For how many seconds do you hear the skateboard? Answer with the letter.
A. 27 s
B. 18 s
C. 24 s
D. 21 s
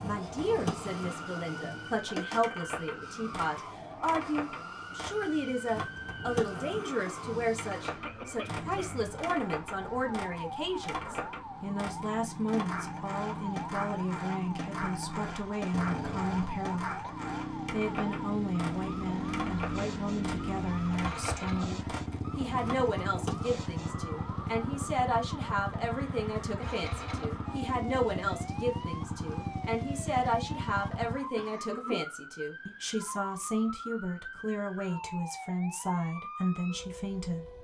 C.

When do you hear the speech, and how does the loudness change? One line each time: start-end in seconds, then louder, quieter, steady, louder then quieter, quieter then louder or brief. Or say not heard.
0.0-17.0 steady
17.7-37.5 steady.